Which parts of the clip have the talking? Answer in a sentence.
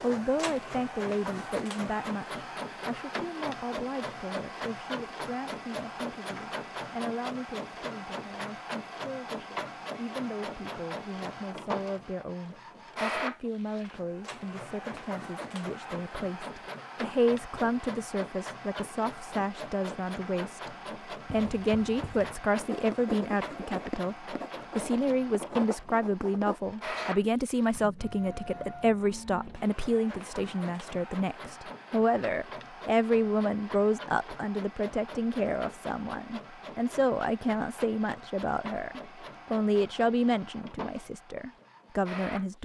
The talking can be heard from 0.0 to 20.7 s and from 21.3 to 42.6 s.